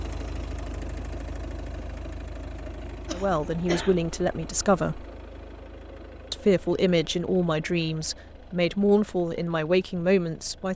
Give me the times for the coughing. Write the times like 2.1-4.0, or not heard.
3.0-4.0.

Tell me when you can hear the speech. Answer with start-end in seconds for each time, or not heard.
3.1-5.0, 6.3-10.7.